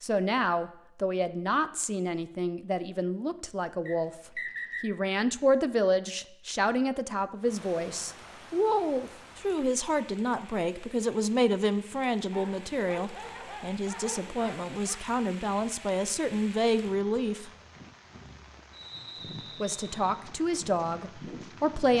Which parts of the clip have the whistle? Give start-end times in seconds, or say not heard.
3.9-4.8, 18.7-20.2.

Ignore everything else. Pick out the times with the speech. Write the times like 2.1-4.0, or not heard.
0.0-17.5, 19.6-21.9.